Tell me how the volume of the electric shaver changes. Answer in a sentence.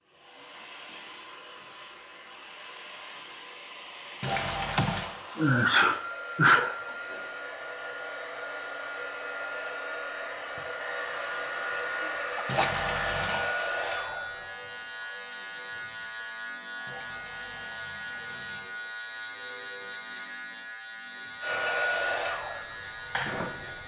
The loudness of the electric shaver stays about the same.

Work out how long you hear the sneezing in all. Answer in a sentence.
The sneezing can be heard for 3 seconds in total.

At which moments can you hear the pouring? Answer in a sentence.
You can hear the pouring from 4.2 to 5.1 s, from 12.4 to 13.4 s and from 16.9 to 18.7 s.